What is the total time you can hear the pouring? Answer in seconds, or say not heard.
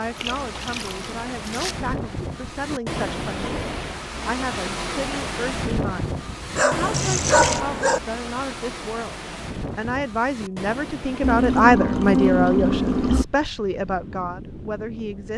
4 s.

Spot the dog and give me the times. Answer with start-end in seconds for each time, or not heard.
6.5-8.0.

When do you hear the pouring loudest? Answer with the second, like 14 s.
12 s.